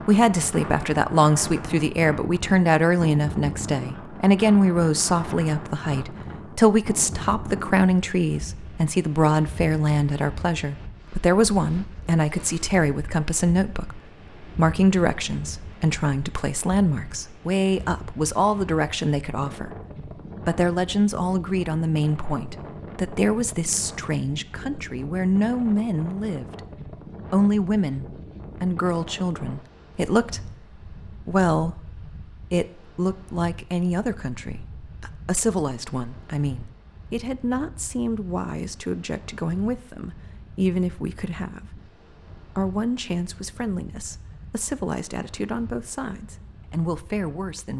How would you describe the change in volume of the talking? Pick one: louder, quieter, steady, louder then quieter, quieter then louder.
quieter.